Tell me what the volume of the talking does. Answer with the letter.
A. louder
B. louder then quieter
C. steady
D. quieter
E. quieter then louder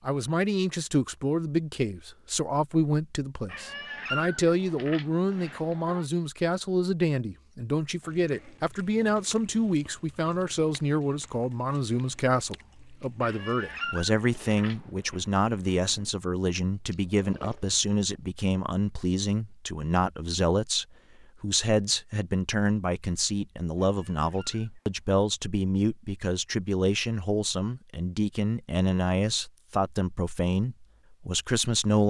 C.